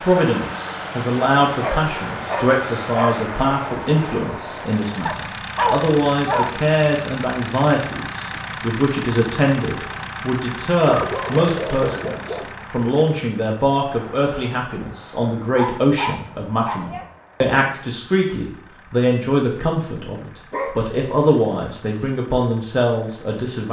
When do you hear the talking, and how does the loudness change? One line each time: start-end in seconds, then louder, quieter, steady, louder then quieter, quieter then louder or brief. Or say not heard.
0.0-23.6 steady.